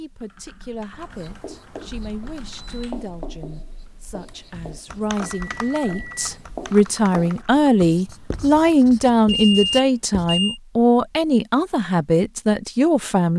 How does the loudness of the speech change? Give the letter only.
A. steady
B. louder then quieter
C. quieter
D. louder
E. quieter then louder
D.